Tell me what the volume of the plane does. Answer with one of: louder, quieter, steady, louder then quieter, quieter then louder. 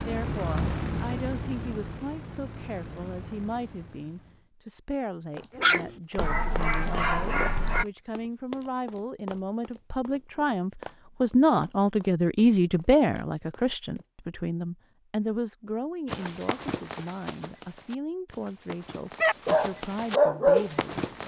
quieter.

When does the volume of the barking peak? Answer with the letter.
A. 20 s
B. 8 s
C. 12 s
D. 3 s
A.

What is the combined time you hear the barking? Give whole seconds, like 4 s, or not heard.
4 s.